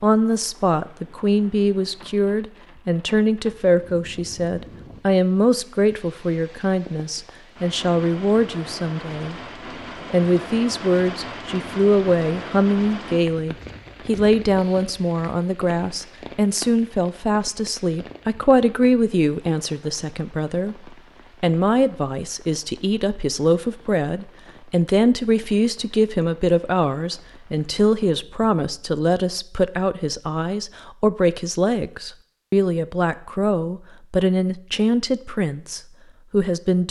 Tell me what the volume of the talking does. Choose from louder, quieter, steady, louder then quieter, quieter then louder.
steady.